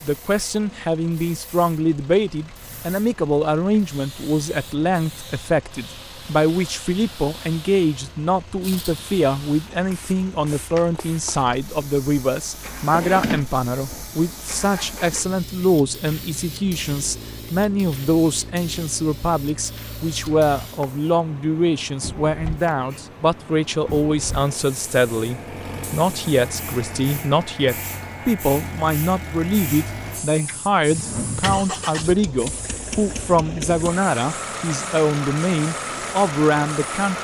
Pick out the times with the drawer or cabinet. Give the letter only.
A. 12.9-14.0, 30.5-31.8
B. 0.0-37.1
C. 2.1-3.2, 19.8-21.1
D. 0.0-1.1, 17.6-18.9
A.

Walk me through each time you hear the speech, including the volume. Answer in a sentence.
You can hear the speech from 0.0 to 37.1 s, at a steady volume.